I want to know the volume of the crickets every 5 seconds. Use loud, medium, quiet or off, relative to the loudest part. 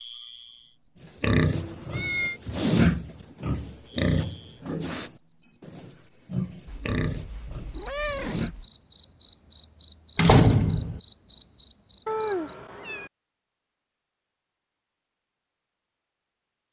medium, loud, loud, off.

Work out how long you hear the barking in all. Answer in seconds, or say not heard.
not heard.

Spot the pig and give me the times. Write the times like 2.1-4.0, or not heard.
1.0-8.6.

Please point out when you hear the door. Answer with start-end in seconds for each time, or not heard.
10.2-11.0.